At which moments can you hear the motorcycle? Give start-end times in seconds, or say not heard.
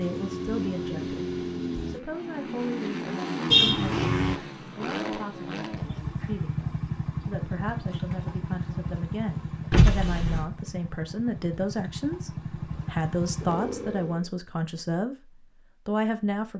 0.0-14.3.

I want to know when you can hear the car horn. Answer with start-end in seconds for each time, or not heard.
3.5-4.3, 9.7-10.5.